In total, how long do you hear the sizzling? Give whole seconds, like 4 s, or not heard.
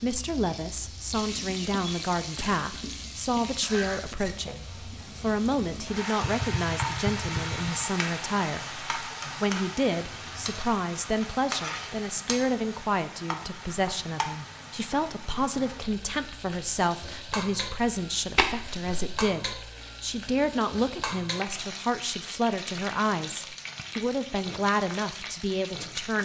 26 s.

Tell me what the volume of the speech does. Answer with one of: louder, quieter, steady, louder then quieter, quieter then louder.
steady.